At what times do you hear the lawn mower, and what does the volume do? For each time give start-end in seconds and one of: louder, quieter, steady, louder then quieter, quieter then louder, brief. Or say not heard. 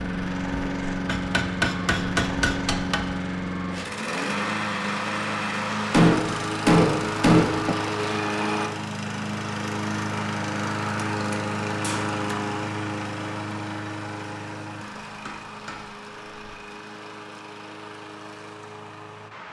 0.0-19.4 quieter.